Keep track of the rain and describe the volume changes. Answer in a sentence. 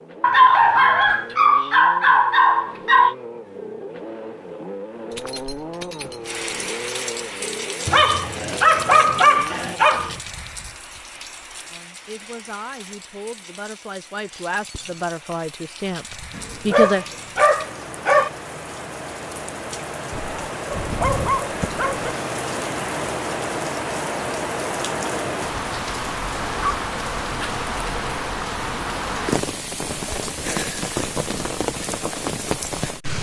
The loudness of the rain goes down, then up.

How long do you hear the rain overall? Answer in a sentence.
You can hear the rain for 27 seconds altogether.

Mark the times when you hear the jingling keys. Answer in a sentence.
The jingling keys can be heard from 5.1 to 6.5 s, from 14.3 to 15.2 s and from 29.9 to 30.4 s.